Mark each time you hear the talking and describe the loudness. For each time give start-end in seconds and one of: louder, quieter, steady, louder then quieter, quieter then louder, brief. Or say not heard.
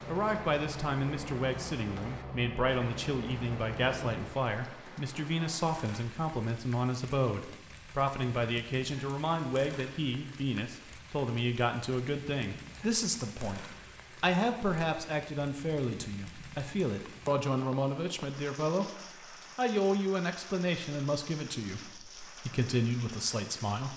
0.1-23.9 steady.